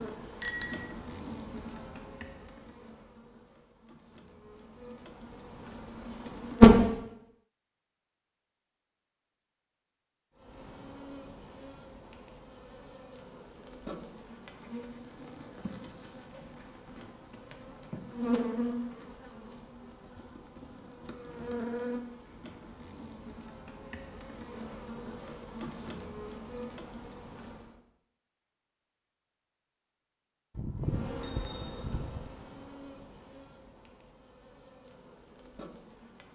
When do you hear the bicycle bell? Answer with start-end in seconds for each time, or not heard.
0.4-0.9, 30.6-32.3.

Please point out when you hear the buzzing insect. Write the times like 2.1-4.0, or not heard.
0.0-6.8, 10.4-27.8, 30.9-36.3.